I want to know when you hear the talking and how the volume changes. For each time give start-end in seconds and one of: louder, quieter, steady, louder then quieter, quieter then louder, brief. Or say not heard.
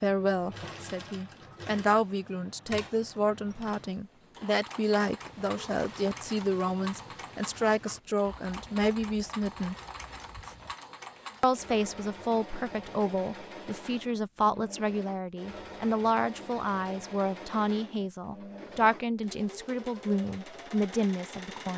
0.0-9.8 steady
11.4-21.7 steady.